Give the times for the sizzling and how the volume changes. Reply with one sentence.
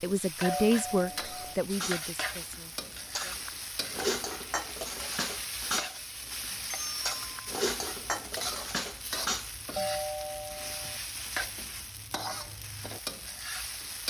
You can hear the sizzling from 0.0 to 14.0 s, at a steady volume.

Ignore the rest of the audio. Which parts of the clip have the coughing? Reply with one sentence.
You can't hear the coughing here.